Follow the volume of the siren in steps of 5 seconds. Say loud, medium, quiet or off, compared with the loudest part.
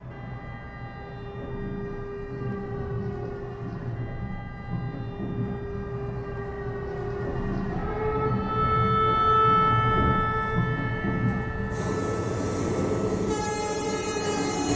quiet, loud, medium.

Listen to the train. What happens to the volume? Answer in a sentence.
The loudness of the train goes up.